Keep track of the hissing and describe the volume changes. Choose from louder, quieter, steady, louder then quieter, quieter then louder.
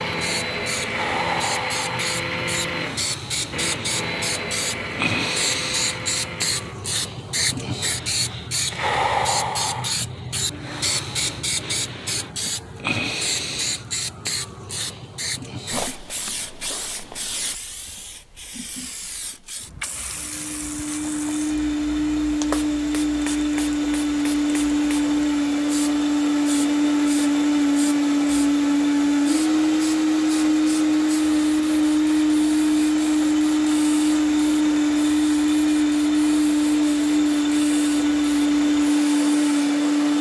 quieter.